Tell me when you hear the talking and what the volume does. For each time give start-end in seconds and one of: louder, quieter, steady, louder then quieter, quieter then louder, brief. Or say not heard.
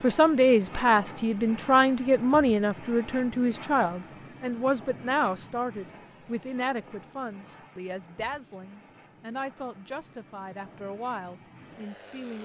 0.0-12.3 quieter.